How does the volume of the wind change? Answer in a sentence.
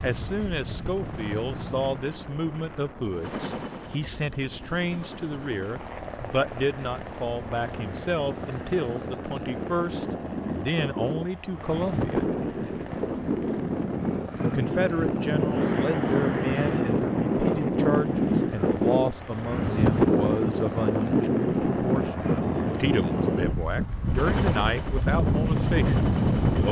The loudness of the wind goes up.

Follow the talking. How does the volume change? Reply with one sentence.
The loudness of the talking stays about the same.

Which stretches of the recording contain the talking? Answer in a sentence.
The talking can be heard from 0.0 to 12.2 s and from 14.4 to 26.6 s.